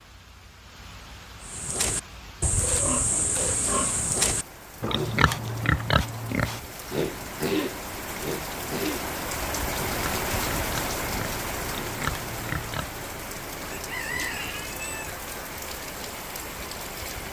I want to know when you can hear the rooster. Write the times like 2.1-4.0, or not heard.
13.7-15.2.